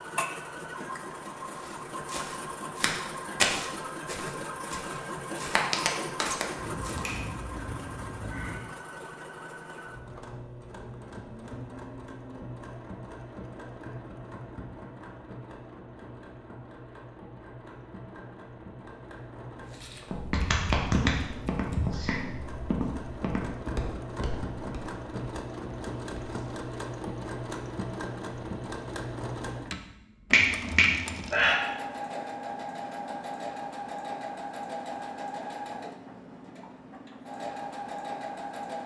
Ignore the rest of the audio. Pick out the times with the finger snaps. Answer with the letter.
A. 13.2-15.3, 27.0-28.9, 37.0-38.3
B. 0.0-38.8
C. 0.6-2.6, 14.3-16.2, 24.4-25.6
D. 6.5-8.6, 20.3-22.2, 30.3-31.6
D.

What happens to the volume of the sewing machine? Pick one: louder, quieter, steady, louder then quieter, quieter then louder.
quieter then louder.